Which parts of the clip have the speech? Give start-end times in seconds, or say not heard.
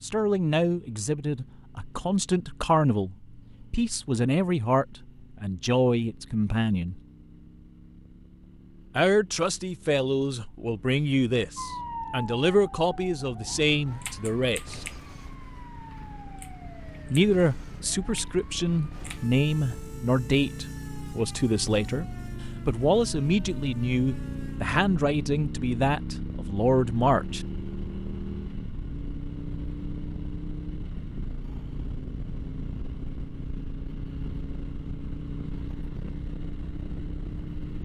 0.0-7.0, 8.9-14.8, 17.1-27.4.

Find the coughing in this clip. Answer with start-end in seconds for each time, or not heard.
not heard.